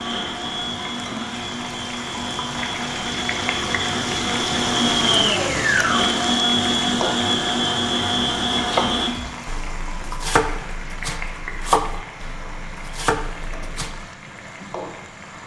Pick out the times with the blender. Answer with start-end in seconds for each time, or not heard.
0.0-9.1.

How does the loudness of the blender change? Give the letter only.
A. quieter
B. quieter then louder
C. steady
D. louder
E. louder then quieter
D.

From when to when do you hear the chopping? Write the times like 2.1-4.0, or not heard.
8.6-14.0.